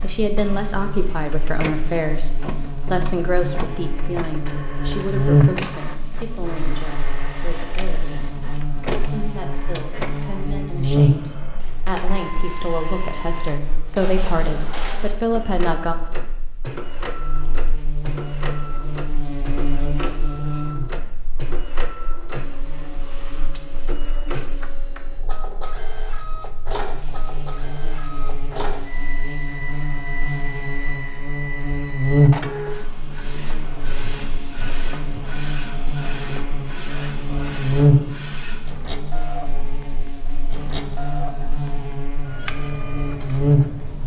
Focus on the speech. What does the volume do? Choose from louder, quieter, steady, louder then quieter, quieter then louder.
quieter then louder.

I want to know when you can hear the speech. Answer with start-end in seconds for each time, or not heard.
0.0-15.9.